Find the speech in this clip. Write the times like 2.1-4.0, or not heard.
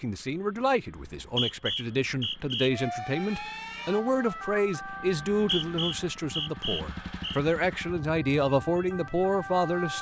0.0-9.9.